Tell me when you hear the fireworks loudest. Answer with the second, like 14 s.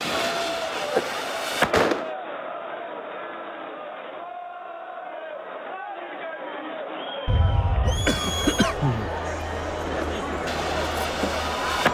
2 s.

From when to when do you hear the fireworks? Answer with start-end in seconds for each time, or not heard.
0.0-2.1, 9.7-11.8.